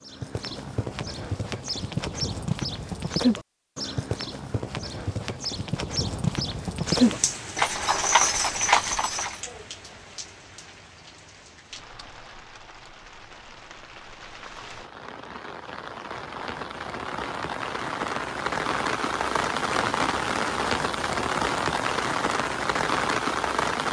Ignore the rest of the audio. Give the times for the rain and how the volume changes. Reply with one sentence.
The rain can be heard from 6.8 to 23.8 s, getting quieter then louder.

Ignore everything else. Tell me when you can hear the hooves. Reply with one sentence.
The hooves can be heard from 0.0 to 9.3 s.